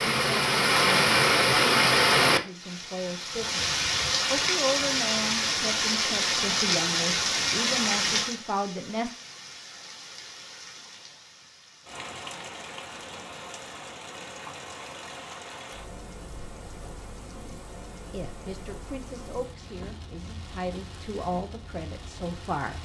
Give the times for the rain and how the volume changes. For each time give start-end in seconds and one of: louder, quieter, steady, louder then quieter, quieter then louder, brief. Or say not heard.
0.0-22.8 quieter.